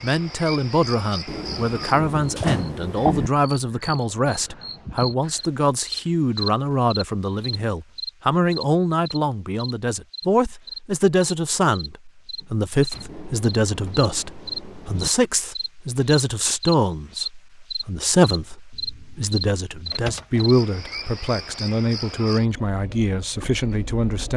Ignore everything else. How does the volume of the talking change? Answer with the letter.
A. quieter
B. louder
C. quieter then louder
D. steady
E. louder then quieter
D.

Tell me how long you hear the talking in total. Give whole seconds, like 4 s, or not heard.
24 s.